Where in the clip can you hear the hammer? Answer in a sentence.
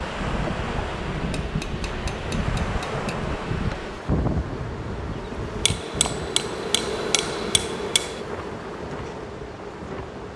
You can hear the hammer from 1.2 to 3.0 s and from 5.7 to 8.2 s.